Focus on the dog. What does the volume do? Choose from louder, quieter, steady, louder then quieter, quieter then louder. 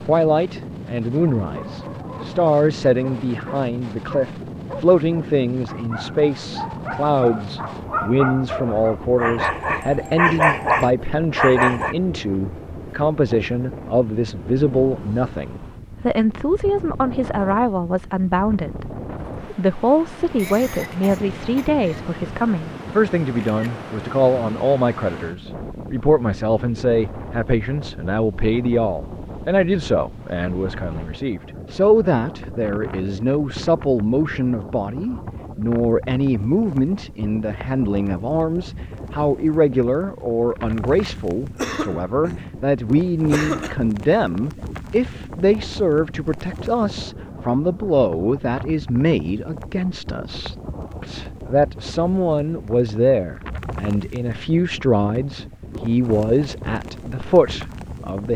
louder.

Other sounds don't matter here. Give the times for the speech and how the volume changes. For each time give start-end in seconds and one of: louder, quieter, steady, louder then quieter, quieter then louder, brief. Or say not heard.
0.1-58.3 steady.